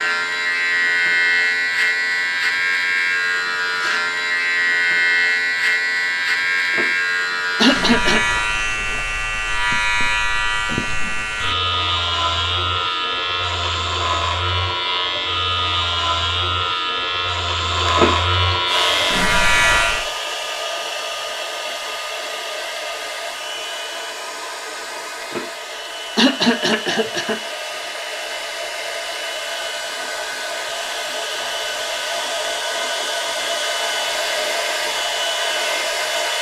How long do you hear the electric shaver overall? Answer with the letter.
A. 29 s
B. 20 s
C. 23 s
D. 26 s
B.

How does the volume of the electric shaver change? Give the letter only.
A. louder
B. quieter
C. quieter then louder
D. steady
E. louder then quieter
D.